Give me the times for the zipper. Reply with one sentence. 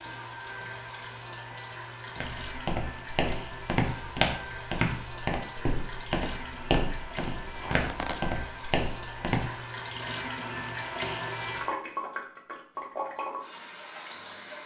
The zipper can be heard from 7.3 to 8.2 s.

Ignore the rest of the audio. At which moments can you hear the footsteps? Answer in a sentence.
The footsteps can be heard from 2.1 to 9.6 s.